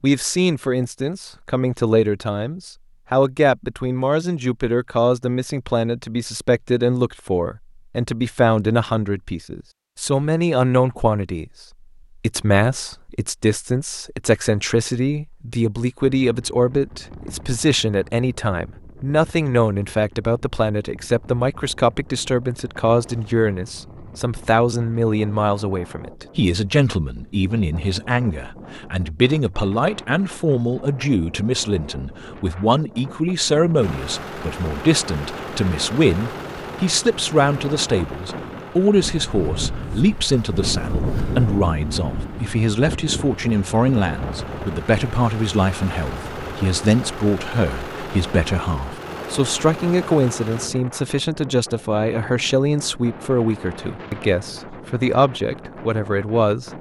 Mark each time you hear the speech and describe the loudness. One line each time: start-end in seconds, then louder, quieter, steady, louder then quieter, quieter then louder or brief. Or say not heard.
0.0-11.4 steady
12.2-56.7 steady.